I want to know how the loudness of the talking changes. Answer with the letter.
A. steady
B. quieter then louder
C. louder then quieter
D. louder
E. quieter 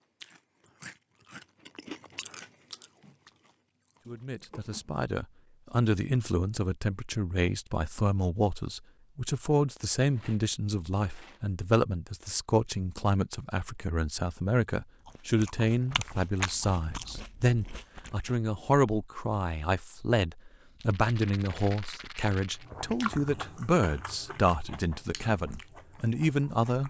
A.